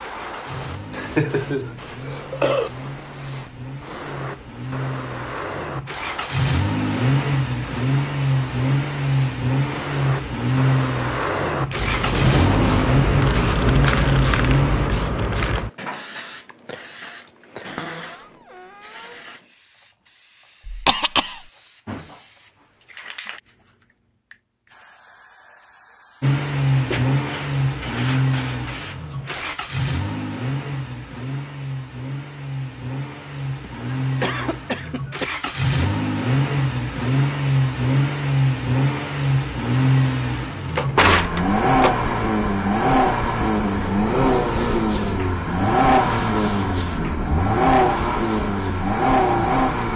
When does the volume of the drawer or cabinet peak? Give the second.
41 s.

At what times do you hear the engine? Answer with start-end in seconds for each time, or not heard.
0.0-14.9, 26.2-49.9.